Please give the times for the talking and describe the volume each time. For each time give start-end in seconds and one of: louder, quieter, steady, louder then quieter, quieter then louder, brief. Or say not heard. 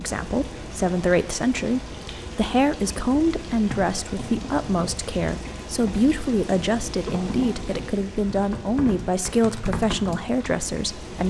0.0-11.2 steady.